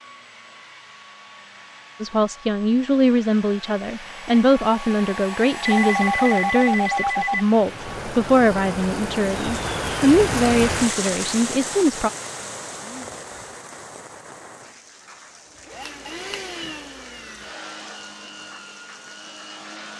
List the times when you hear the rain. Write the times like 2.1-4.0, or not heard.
7.5-19.9.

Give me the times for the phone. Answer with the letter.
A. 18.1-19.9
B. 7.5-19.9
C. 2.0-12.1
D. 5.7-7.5
D.